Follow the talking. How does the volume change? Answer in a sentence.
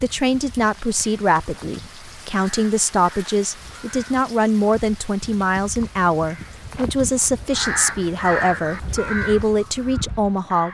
The volume of the talking stays about the same.